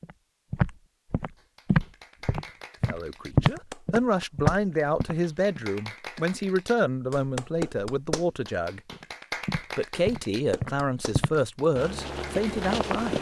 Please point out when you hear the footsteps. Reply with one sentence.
You can hear the footsteps from 0.0 to 5.6 s and from 8.9 to 13.1 s.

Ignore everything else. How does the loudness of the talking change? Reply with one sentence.
The volume of the talking stays about the same.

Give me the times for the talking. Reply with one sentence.
The talking can be heard from 2.9 to 8.8 s and from 9.8 to 13.1 s.